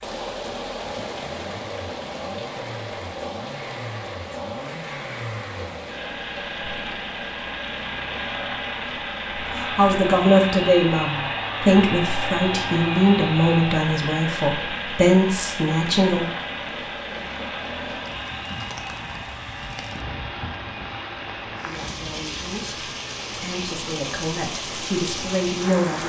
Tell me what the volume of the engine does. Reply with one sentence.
The loudness of the engine goes up, then down.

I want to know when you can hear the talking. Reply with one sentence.
The talking can be heard from 9.6 to 16.2 s and from 21.6 to 26.0 s.